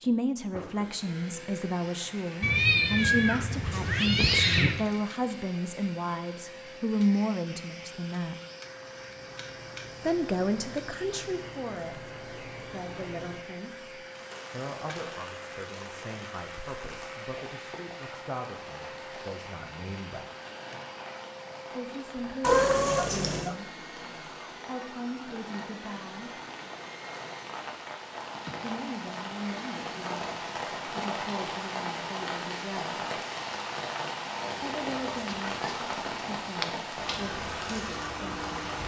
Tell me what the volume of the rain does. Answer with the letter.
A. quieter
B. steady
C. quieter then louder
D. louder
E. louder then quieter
D.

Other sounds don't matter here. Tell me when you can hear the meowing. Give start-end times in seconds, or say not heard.
2.4-4.8, 22.4-23.6, 34.5-36.6.